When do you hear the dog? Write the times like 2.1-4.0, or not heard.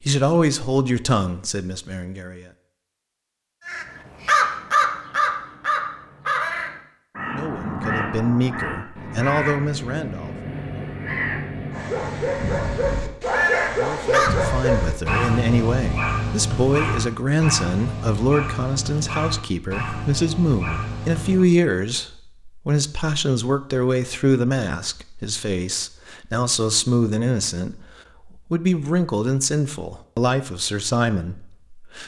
11.7-21.4.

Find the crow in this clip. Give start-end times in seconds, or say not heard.
3.6-14.3.